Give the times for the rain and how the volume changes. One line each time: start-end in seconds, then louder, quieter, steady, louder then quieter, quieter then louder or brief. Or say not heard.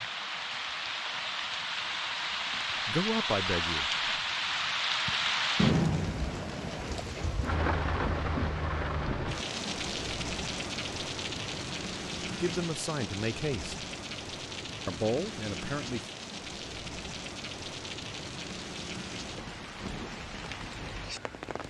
0.0-21.6 quieter.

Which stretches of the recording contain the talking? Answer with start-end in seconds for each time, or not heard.
2.9-3.9, 12.4-13.8, 14.8-16.1.